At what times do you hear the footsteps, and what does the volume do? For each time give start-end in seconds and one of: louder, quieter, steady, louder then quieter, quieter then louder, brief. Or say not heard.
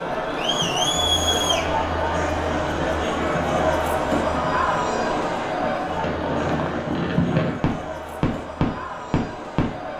not heard.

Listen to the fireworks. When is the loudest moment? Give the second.
7 s.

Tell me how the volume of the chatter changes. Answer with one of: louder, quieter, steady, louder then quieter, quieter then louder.
quieter.